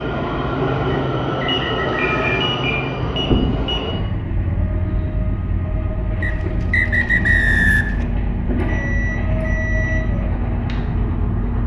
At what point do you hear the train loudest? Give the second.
1 s.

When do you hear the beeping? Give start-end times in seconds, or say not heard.
1.4-4.0, 8.6-10.0.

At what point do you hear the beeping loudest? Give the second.
2 s.